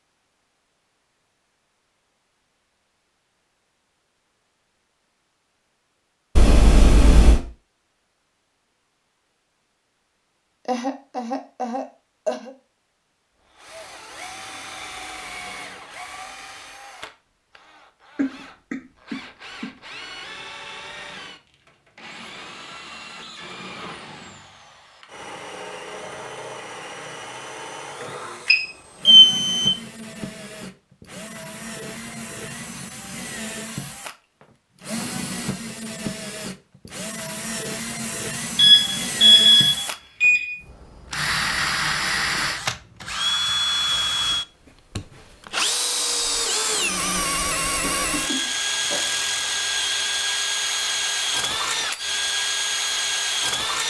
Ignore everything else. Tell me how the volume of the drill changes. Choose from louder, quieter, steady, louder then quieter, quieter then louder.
louder.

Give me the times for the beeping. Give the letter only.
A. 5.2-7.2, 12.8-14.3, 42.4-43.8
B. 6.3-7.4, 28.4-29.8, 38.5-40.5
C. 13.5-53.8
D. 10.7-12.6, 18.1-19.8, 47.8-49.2
B.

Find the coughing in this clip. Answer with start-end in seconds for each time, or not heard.
10.7-12.6, 18.1-19.8, 47.8-49.2.